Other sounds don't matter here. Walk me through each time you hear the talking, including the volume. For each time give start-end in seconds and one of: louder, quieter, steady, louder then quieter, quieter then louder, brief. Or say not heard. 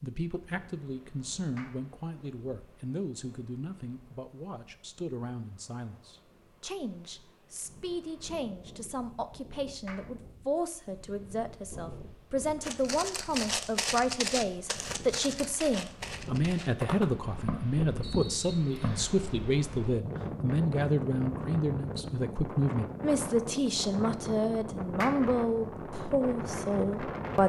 0.0-27.4 louder.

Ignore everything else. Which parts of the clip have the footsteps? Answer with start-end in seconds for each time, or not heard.
12.6-19.1.